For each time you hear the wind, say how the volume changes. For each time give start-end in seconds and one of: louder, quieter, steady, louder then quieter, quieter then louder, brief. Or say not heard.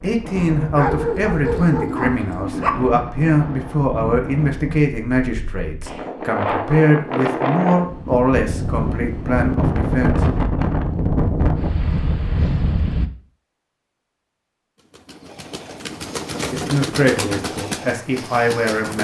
0.0-13.1 louder.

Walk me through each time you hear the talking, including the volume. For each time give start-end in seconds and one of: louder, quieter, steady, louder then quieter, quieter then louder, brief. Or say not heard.
0.0-10.2 steady
16.5-18.9 brief.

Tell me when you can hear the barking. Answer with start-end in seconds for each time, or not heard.
0.8-2.7.